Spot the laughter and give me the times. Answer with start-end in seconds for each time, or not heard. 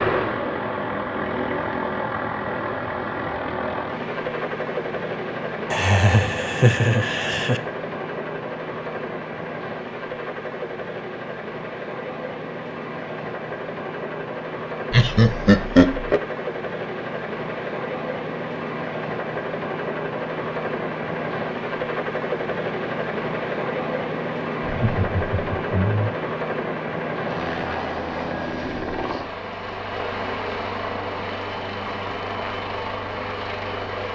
5.7-7.6, 14.9-16.2, 24.6-26.1.